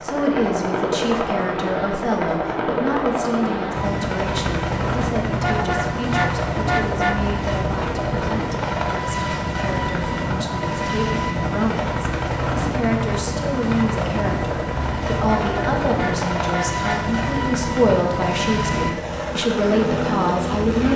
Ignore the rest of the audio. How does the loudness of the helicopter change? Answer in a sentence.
The loudness of the helicopter stays about the same.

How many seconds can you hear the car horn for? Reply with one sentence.
The car horn can be heard for 4 seconds in total.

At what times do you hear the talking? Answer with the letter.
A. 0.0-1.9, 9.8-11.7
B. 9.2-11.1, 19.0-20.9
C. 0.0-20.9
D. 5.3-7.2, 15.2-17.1
C.